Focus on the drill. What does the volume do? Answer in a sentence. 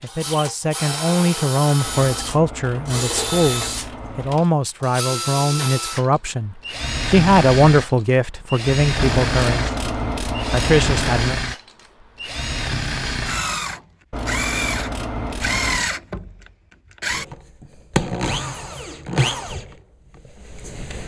The volume of the drill stays about the same.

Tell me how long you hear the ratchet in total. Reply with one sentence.
You can hear the ratchet for 7 seconds altogether.